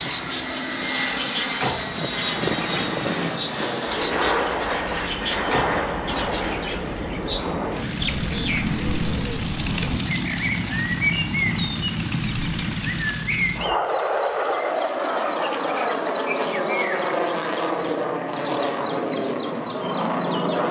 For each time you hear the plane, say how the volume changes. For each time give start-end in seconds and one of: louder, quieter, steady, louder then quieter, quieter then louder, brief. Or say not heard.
0.0-20.6 steady.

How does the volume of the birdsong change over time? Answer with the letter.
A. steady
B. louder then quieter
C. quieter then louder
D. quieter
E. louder
A.